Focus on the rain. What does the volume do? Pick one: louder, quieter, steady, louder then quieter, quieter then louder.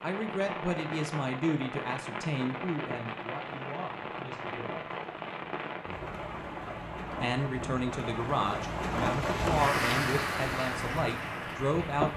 louder.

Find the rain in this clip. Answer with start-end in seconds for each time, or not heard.
0.0-12.1.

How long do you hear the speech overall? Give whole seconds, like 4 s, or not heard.
10 s.